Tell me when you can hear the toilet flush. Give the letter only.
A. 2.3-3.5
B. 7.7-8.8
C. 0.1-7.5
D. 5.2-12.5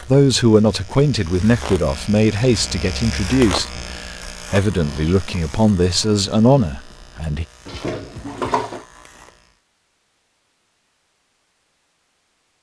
B.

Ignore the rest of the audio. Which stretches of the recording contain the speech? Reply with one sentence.
The speech can be heard from 0.1 to 7.5 s.